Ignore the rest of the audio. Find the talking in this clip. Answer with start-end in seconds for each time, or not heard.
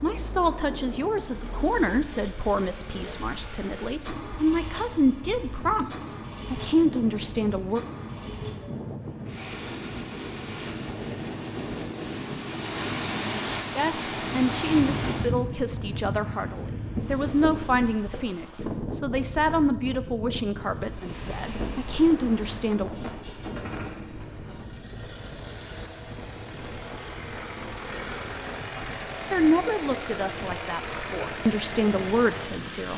0.0-7.8, 13.8-22.9, 29.3-32.9.